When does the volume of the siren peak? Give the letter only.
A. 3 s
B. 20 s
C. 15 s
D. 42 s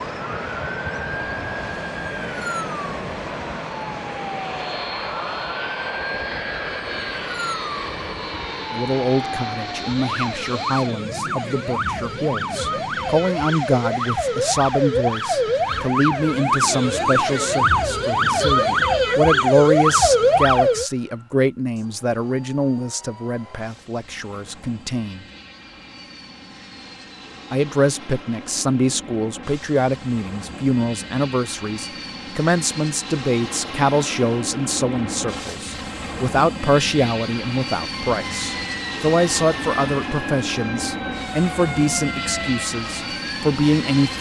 B.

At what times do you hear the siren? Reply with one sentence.
You can hear the siren from 0.1 to 20.9 s and from 37.9 to 44.1 s.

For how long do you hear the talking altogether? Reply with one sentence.
The talking can be heard for 33 seconds in total.